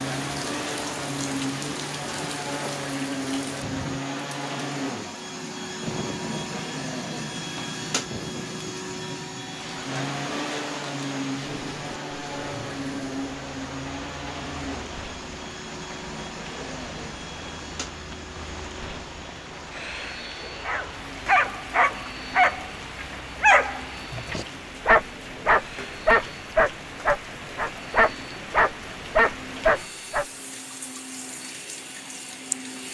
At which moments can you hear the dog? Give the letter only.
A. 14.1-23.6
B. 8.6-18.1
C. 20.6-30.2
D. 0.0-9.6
C.